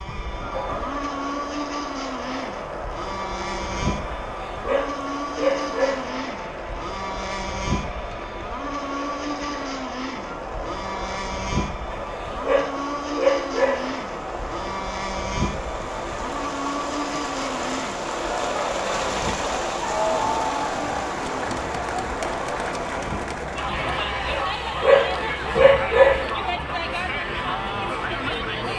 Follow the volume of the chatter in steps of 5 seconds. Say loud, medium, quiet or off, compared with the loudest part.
medium, medium, medium, loud, loud, loud.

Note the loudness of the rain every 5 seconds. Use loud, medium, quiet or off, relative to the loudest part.
medium, medium, medium, loud, loud, medium.